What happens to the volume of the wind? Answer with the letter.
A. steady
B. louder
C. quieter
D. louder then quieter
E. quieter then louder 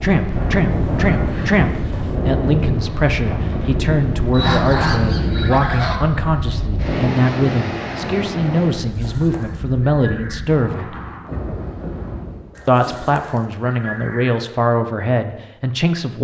C.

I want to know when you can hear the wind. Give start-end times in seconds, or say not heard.
0.0-12.6.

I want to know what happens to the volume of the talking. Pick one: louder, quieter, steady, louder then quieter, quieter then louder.
steady.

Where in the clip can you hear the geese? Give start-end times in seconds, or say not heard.
0.3-2.2, 4.3-6.0, 8.8-10.4, 12.6-14.4.